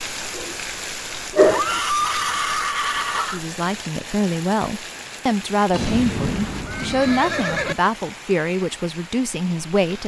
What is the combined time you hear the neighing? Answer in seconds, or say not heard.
4 s.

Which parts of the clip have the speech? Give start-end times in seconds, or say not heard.
3.2-10.0.